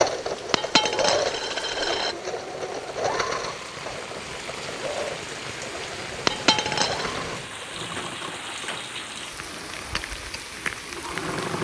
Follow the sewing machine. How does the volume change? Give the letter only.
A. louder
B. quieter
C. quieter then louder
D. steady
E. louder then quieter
B.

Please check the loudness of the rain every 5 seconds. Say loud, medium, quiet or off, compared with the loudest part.
medium, loud, loud.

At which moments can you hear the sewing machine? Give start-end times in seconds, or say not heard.
0.0-11.5.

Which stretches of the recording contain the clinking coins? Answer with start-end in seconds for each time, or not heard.
0.5-2.1, 6.2-7.2.